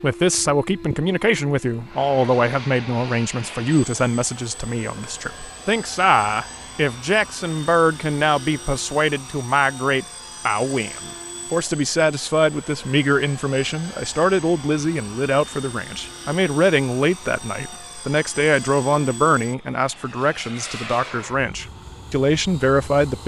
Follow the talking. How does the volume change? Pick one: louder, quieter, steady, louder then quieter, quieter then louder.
steady.